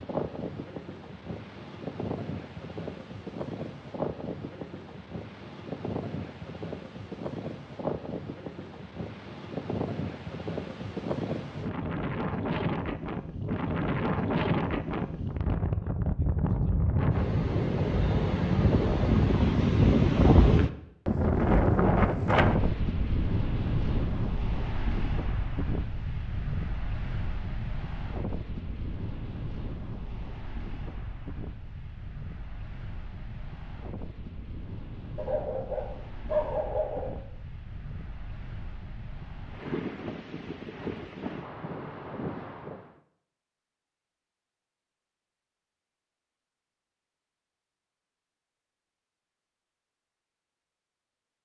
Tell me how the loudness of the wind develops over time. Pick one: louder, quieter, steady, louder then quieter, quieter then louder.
louder then quieter.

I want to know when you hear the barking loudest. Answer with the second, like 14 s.
36 s.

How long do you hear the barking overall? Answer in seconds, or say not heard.
2 s.